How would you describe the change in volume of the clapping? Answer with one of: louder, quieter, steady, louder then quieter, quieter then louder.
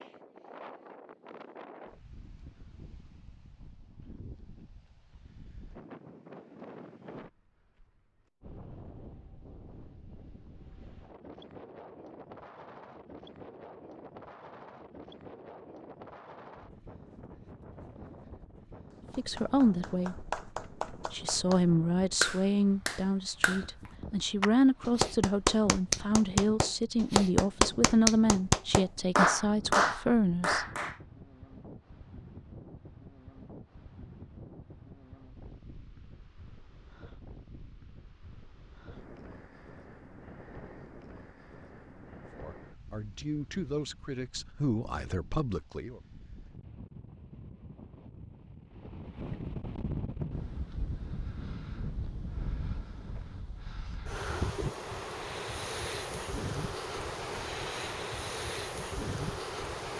louder.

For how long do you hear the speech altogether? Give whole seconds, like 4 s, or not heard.
14 s.